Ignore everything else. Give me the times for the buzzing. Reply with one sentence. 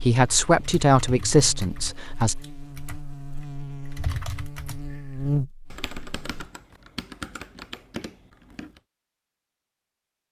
The buzzing can be heard from 0.1 to 6.5 s.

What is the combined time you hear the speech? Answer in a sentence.
The speech can be heard for 2 seconds in total.